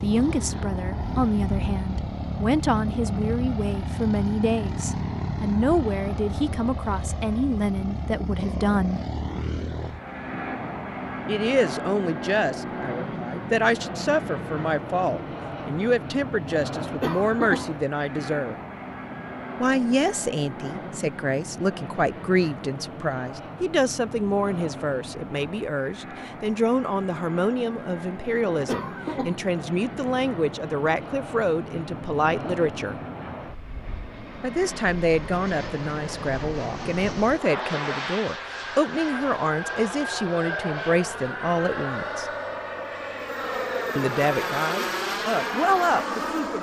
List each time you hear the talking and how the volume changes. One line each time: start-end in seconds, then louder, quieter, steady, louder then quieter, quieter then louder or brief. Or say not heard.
0.0-9.0 steady
11.2-18.6 steady
19.6-33.0 steady
34.4-42.2 steady
44.0-46.5 brief.